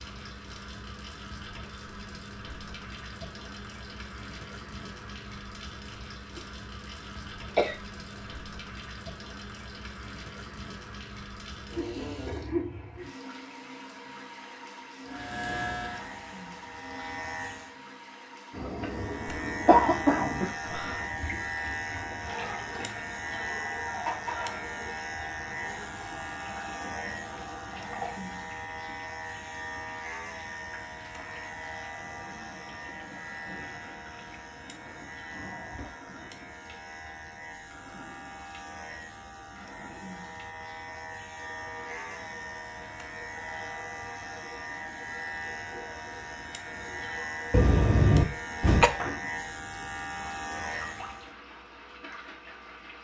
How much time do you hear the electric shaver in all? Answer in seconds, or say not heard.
35 s.